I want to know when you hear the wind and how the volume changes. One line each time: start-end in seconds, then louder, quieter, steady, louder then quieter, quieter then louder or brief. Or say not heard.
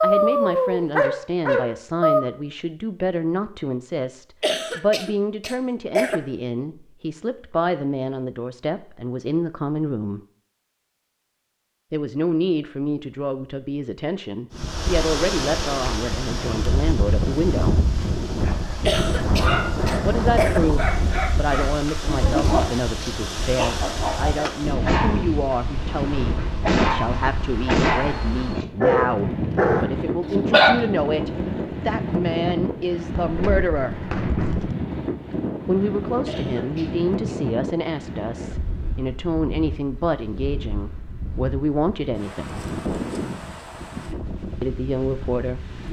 14.5-45.8 quieter.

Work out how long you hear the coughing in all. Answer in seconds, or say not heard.
5 s.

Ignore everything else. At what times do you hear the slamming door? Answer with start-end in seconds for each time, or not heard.
33.1-34.8.